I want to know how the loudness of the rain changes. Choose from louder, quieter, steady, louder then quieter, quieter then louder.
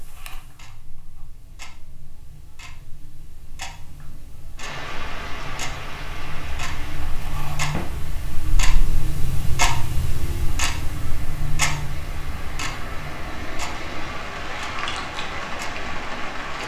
quieter then louder.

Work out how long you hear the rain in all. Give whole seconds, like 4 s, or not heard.
12 s.